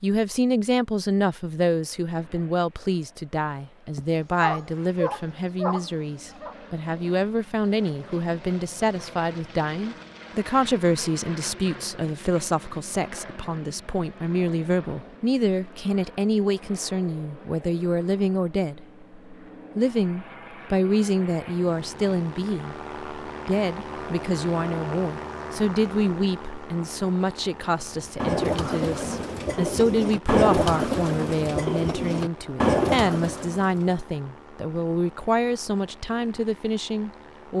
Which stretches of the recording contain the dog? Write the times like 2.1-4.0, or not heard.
4.0-6.5.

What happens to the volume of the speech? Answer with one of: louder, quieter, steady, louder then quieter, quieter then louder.
steady.